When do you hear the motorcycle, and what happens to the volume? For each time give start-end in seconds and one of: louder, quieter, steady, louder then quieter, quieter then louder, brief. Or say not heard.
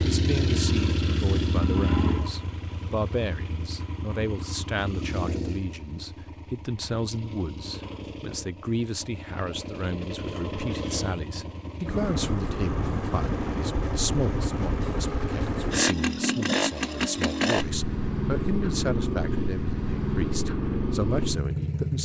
0.0-21.9 quieter then louder.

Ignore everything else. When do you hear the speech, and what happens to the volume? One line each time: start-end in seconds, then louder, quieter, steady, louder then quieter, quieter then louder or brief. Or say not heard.
0.0-21.9 steady.